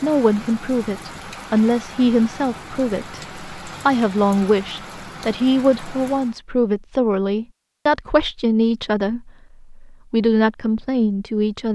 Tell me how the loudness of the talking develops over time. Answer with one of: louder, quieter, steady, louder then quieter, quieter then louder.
steady.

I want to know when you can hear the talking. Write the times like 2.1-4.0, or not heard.
0.0-11.6.